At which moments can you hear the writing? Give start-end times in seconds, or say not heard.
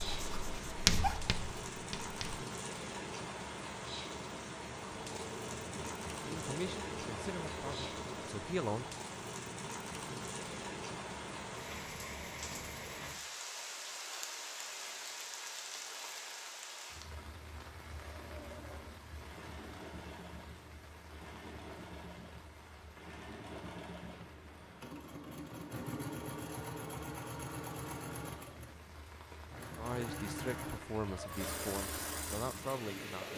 0.0-2.4.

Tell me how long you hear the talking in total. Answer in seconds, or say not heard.
6 s.